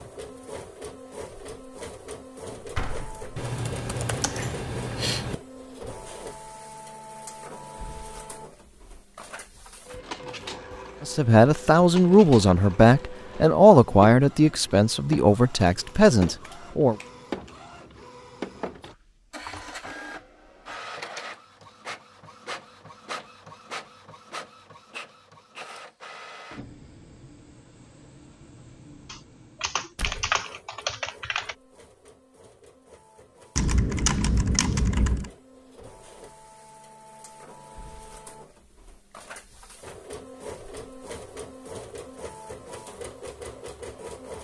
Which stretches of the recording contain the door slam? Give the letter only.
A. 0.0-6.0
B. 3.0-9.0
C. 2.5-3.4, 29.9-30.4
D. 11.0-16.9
C.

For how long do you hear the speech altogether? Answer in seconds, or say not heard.
6 s.